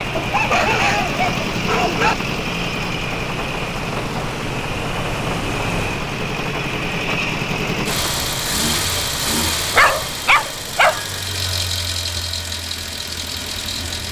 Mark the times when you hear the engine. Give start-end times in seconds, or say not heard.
0.0-14.0.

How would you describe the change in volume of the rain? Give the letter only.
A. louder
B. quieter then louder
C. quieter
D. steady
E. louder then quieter
C.